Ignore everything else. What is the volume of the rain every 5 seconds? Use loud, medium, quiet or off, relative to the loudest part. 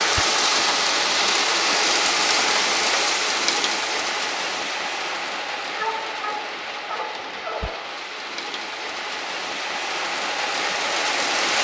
loud, medium, loud.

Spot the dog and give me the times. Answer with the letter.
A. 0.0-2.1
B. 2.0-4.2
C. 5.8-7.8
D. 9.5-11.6
C.